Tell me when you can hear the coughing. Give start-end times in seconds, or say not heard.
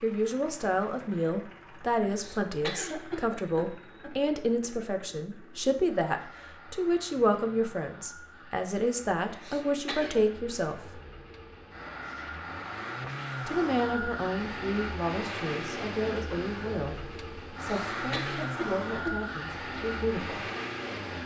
2.0-4.1, 9.3-10.2, 17.8-19.1.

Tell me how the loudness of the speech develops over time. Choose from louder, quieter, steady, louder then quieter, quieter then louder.
quieter.